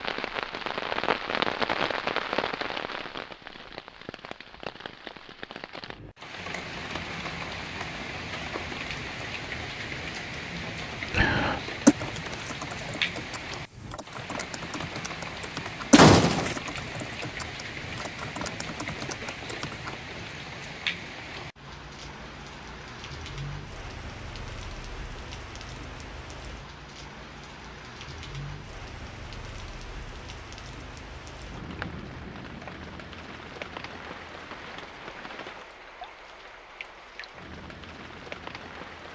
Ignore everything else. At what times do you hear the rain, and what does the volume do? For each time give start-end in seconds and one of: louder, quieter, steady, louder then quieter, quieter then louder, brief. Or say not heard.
0.0-39.1 quieter.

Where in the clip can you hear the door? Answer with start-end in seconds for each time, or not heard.
15.9-16.6.